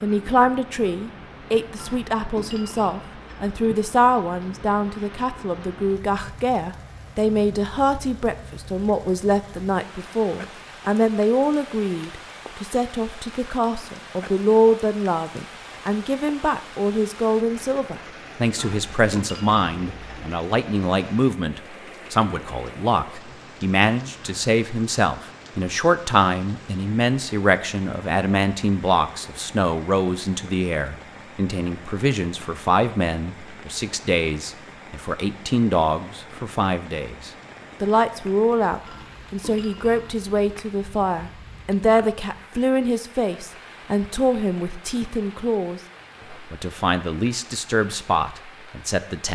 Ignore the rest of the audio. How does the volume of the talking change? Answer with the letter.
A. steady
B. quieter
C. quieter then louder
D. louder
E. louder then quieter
A.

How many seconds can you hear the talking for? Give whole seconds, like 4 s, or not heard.
49 s.